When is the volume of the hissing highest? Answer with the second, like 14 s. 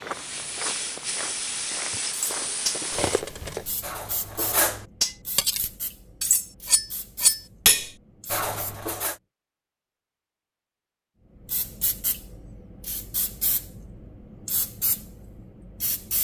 2 s.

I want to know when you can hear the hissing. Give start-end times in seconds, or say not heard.
0.1-8.8, 11.4-16.1.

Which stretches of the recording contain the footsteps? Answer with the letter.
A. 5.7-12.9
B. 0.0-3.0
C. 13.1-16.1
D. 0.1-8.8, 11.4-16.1
B.